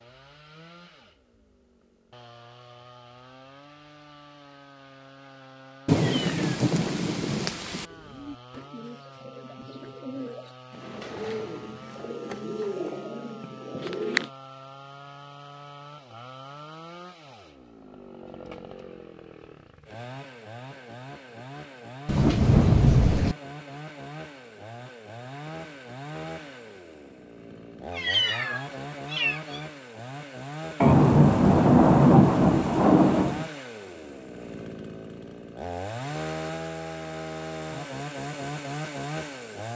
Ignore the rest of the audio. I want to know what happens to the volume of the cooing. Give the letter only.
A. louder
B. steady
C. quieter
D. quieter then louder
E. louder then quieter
A.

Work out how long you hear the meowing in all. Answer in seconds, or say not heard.
2 s.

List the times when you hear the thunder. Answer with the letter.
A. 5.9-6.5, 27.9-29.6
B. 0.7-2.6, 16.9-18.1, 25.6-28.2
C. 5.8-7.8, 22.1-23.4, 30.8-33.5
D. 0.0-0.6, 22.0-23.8
C.